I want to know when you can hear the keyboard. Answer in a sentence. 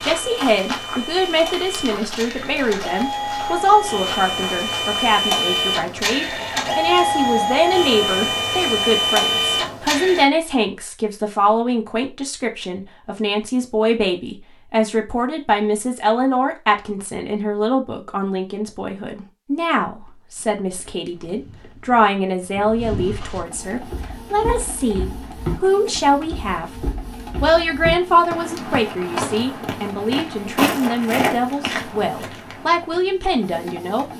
The keyboard can't be heard in this clip.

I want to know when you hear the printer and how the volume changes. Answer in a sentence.
You can hear the printer from 0.0 to 10.2 s, getting louder; and from 23.4 to 34.1 s, at a steady volume.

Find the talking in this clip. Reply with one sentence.
You can hear the talking from 0.0 to 34.1 s.